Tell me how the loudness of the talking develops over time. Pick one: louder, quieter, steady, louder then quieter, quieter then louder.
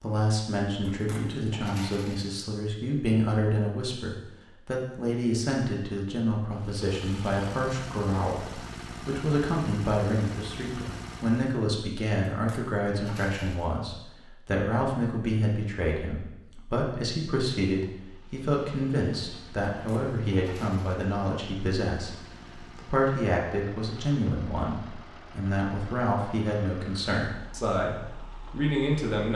steady.